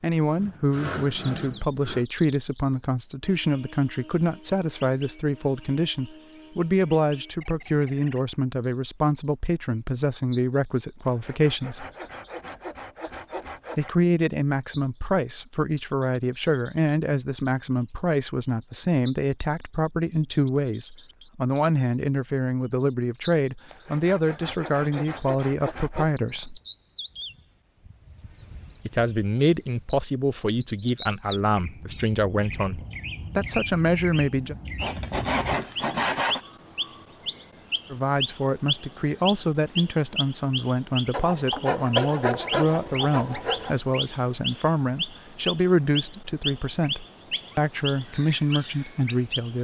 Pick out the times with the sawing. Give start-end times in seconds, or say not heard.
0.3-2.0, 11.0-13.9, 23.6-26.1, 34.8-36.4, 41.1-43.8.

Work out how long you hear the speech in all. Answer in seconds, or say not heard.
42 s.